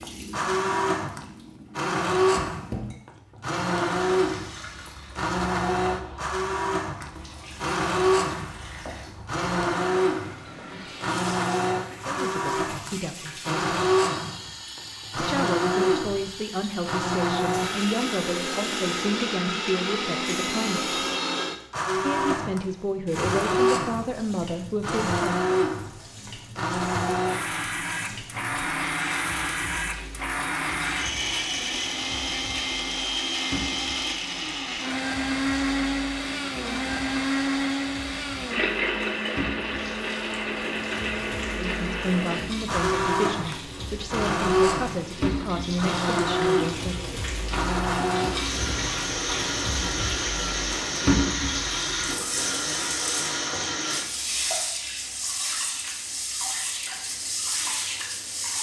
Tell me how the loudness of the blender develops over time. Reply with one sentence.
The loudness of the blender stays about the same.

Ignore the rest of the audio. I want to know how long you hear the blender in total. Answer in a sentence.
The blender can be heard for 54 seconds in total.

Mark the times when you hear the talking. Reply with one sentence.
You can hear the talking from 12.1 to 13.7 s, from 15.2 to 21.0 s, from 21.9 to 25.2 s and from 41.5 to 47.1 s.